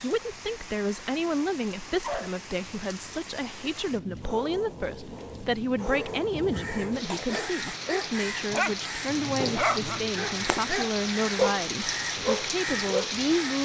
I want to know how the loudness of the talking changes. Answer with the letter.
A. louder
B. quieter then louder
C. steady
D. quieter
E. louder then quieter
C.